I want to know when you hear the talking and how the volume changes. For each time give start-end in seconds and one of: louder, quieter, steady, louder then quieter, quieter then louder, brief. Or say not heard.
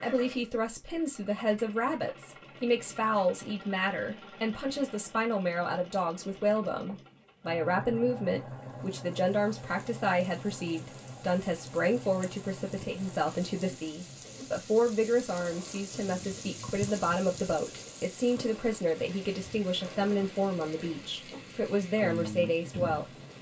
0.0-23.1 steady.